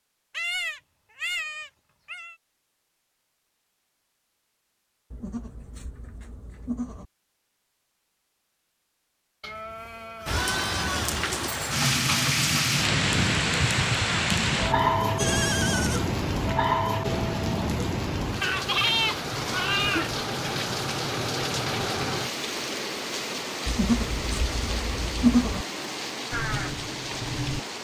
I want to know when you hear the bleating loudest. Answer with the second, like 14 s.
25 s.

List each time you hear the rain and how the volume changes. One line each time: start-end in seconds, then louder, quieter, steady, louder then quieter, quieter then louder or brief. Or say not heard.
10.2-27.7 quieter.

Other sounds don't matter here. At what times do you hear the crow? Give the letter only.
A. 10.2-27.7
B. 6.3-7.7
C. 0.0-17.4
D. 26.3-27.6
D.